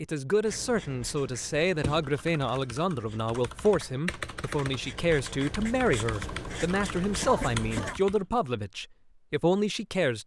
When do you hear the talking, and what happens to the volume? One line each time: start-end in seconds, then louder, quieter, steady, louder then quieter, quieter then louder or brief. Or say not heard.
0.0-10.2 steady.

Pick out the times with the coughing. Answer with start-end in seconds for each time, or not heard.
7.2-8.0.